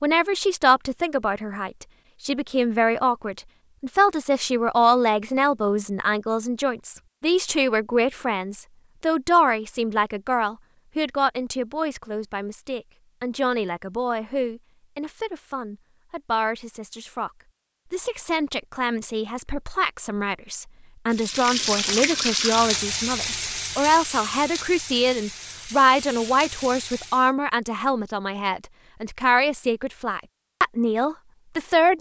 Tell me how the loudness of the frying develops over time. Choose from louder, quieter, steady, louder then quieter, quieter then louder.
quieter.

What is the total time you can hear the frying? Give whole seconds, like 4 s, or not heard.
6 s.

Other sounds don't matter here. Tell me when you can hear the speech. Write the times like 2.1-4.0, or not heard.
0.0-17.3, 17.9-31.9.